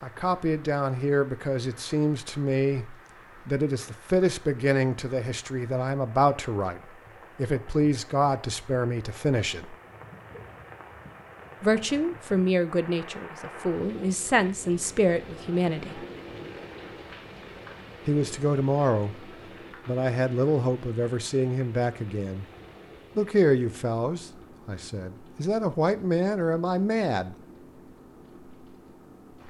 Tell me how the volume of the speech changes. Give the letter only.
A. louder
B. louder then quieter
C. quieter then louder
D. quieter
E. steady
E.